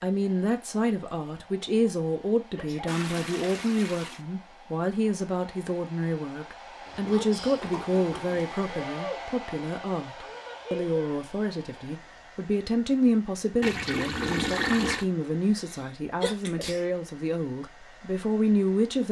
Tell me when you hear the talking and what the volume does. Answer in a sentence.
The talking can be heard from 0.0 to 19.0 s, at a steady volume.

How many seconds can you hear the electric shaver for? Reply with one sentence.
The electric shaver can't be heard in this clip.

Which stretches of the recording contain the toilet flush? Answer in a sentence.
The toilet flush can be heard from 2.9 to 4.2 s, from 6.8 to 8.6 s and from 13.6 to 15.1 s.